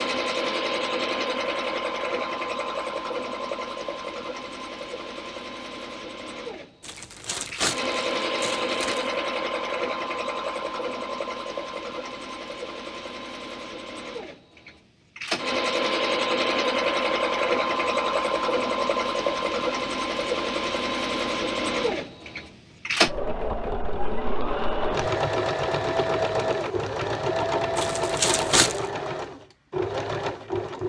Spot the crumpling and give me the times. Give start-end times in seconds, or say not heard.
6.8-9.1, 27.8-28.8.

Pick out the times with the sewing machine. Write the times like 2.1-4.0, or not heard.
0.0-30.8.